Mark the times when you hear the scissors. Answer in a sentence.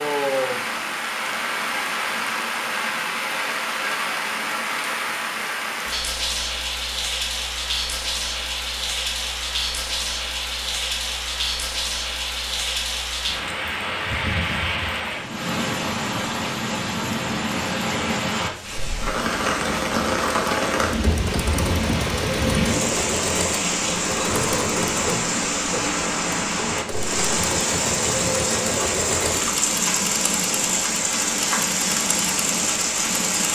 The scissors can't be heard in this clip.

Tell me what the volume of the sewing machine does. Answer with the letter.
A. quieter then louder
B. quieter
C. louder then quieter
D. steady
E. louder
D.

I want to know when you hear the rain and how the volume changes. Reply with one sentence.
You can hear the rain from 0.0 to 33.4 s, at a steady volume.